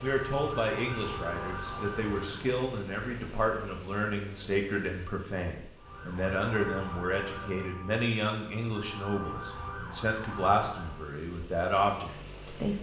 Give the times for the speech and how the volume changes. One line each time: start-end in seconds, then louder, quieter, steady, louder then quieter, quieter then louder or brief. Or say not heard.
0.0-12.7 steady.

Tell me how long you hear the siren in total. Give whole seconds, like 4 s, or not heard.
8 s.